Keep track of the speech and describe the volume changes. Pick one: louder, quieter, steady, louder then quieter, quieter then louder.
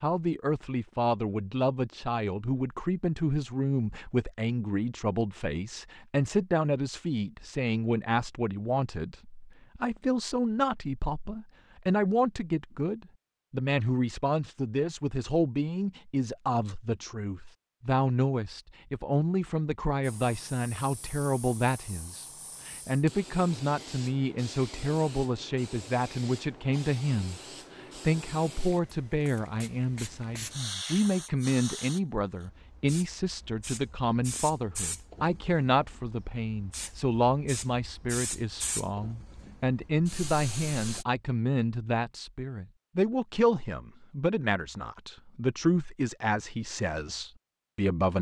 steady.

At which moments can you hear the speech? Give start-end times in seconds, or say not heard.
0.0-48.1.